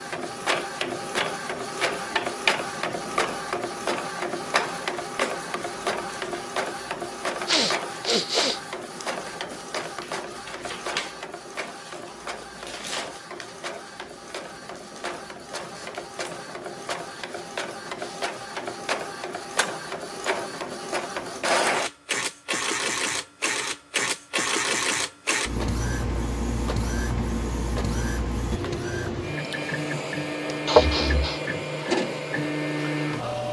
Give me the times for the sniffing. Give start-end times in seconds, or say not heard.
7.5-8.6, 30.6-31.4.